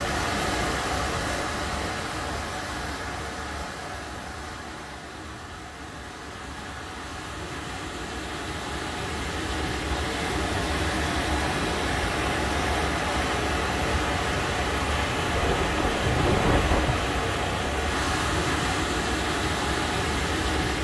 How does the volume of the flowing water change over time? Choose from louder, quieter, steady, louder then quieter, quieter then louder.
quieter then louder.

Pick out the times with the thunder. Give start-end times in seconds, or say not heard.
15.3-16.9.